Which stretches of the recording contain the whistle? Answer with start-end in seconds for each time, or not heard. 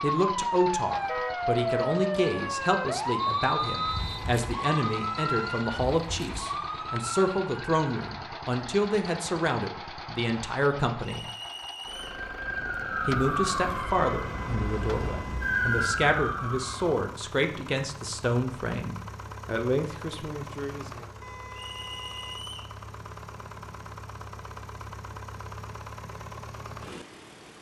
3.2-4.2, 11.0-12.2, 21.6-22.8.